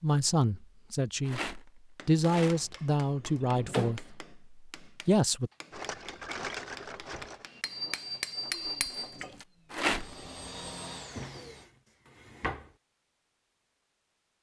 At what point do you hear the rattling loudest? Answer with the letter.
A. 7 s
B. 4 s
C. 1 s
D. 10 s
D.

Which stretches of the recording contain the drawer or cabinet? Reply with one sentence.
You can hear the drawer or cabinet from 2.4 to 4.0 s and from 11.1 to 12.7 s.